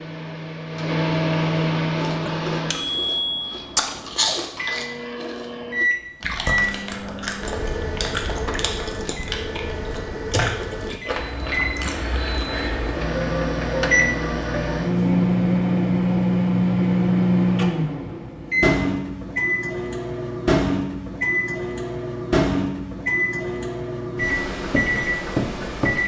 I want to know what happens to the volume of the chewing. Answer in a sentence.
The loudness of the chewing stays about the same.